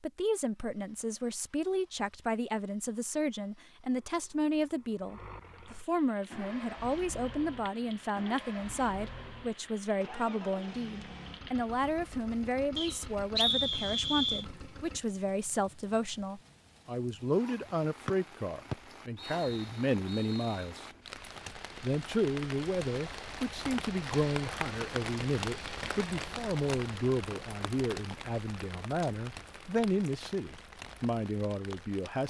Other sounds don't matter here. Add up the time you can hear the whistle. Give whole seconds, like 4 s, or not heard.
4 s.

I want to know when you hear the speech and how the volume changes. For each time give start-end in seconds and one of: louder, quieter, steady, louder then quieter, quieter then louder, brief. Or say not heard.
0.0-20.9 steady
21.8-32.2 steady.